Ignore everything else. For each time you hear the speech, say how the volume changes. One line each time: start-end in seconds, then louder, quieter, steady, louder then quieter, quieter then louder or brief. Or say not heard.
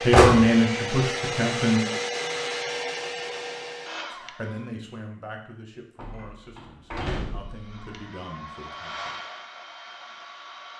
0.0-1.8 brief
4.1-9.2 quieter then louder.